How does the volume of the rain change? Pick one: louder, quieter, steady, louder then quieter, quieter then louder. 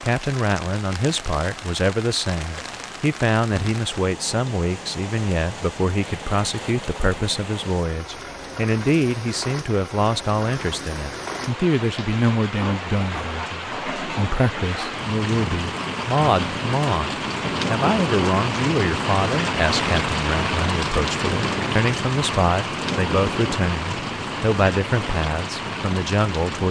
louder.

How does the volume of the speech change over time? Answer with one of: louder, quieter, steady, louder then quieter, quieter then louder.
steady.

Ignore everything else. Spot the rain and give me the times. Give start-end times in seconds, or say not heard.
0.0-26.6.